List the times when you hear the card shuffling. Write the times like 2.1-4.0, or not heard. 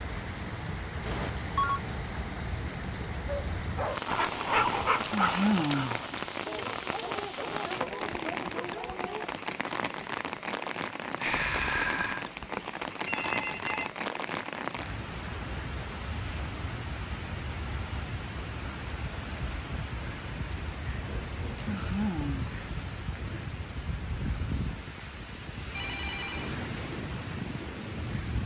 not heard.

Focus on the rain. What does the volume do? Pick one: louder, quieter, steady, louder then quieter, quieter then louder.
steady.